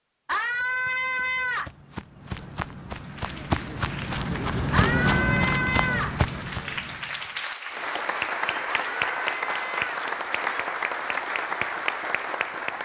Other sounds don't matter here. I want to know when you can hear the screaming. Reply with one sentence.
You can hear the screaming from 0.2 to 1.7 s, from 4.7 to 6.2 s and from 8.7 to 9.9 s.